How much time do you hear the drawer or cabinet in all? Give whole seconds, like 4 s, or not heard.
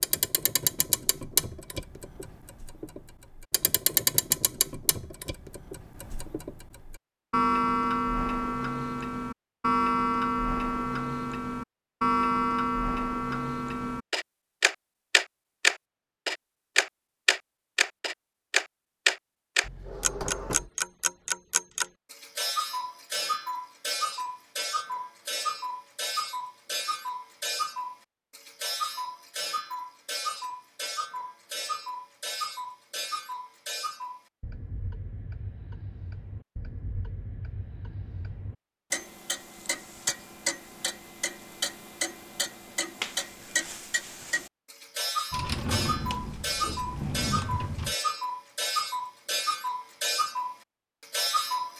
4 s.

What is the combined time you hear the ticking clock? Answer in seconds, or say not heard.
52 s.